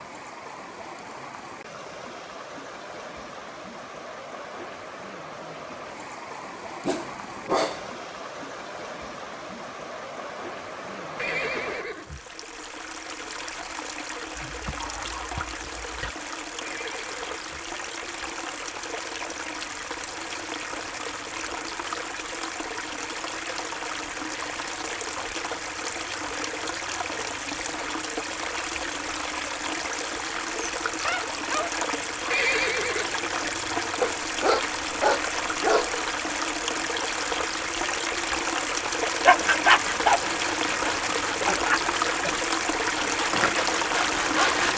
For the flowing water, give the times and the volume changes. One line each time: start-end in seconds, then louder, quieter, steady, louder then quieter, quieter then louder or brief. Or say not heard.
0.0-44.7 louder.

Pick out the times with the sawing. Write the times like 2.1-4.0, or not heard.
39.2-44.7.